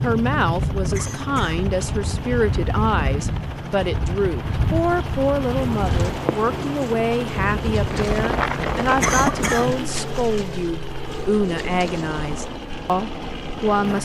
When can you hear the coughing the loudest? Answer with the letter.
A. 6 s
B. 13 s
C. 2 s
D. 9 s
D.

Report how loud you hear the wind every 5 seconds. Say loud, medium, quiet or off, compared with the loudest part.
loud, loud, medium.